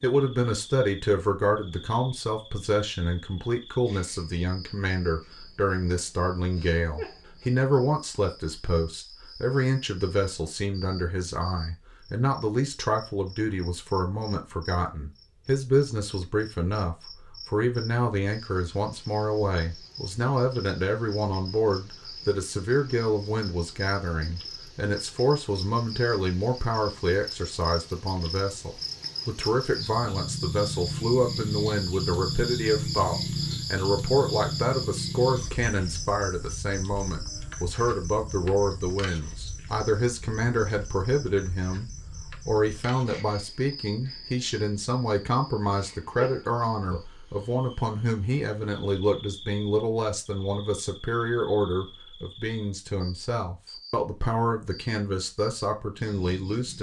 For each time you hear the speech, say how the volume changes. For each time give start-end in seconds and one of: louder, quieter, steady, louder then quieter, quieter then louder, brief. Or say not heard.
0.0-56.7 steady.